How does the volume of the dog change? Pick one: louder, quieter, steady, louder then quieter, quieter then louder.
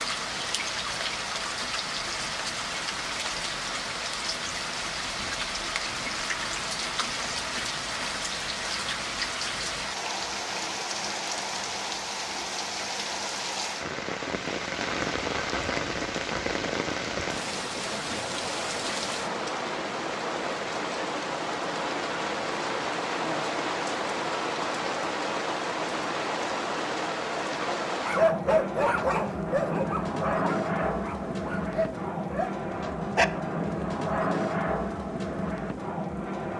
quieter.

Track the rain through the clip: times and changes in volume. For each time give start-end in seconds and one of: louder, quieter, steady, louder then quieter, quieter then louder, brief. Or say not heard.
0.0-36.5 steady.